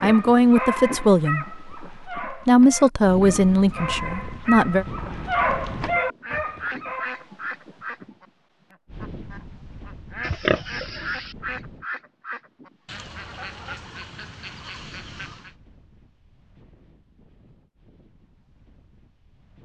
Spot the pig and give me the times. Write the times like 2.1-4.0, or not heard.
10.2-11.3.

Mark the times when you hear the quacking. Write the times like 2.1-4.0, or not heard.
6.2-15.6.